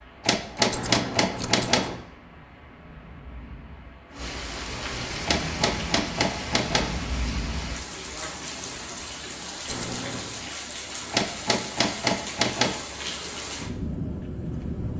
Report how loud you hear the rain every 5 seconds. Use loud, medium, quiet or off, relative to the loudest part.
medium, loud, loud.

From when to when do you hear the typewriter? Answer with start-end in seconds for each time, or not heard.
0.2-1.9, 5.2-7.0, 11.1-12.8.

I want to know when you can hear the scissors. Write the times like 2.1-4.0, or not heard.
0.7-2.0, 9.7-10.4.